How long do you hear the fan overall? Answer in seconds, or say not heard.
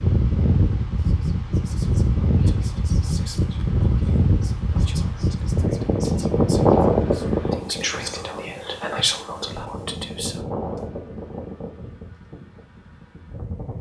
14 s.